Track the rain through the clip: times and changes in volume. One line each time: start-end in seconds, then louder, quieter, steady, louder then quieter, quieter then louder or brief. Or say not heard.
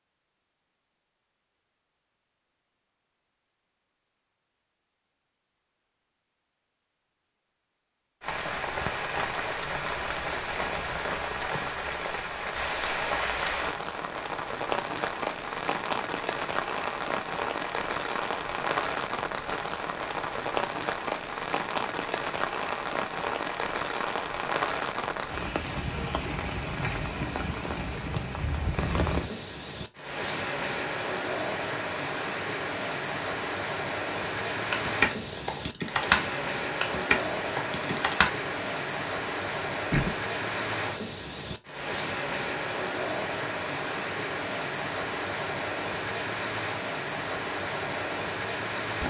8.2-49.0 steady.